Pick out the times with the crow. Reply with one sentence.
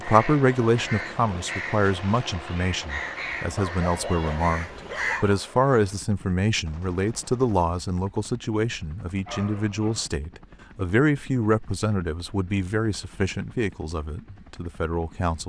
You can hear the crow from 0.0 to 5.3 s.